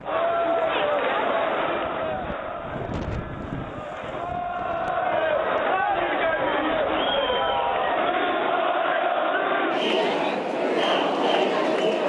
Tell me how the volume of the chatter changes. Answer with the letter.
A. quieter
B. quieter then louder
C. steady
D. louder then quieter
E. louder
B.